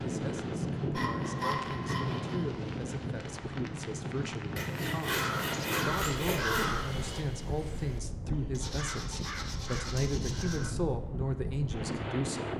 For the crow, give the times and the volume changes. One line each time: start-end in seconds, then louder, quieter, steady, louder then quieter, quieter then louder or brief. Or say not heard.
5.0-10.8 quieter then louder.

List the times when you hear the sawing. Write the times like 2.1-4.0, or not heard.
0.9-2.5, 4.5-6.7, 8.6-10.7.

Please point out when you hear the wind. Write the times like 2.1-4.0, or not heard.
0.0-12.5.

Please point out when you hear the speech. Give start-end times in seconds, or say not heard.
0.0-12.5.